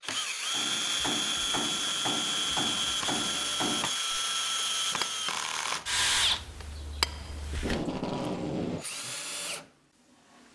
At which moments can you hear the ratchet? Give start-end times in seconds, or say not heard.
not heard.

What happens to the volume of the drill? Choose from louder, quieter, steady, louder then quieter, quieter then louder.
quieter.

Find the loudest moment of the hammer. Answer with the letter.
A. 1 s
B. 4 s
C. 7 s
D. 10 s
C.